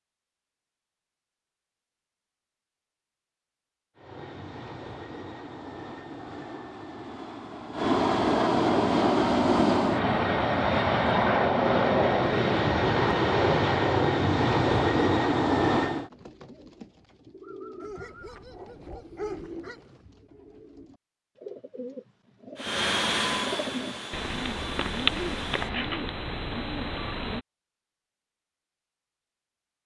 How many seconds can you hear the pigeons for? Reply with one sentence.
The pigeons can be heard for 11 seconds in total.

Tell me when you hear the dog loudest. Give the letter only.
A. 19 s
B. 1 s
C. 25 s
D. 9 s
A.